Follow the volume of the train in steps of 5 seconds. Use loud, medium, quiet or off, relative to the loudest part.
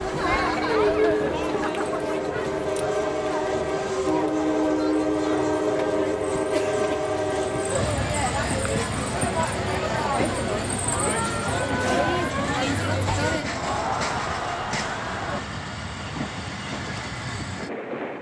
loud, loud, medium, medium.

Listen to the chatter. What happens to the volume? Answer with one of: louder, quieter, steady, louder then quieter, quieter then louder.
quieter then louder.